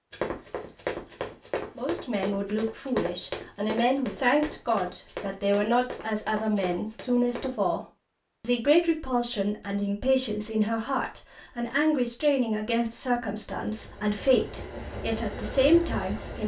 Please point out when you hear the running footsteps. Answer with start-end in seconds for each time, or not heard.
0.1-7.5.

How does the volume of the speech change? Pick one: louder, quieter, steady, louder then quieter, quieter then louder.
steady.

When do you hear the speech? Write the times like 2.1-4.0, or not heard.
1.8-7.8, 8.4-16.4.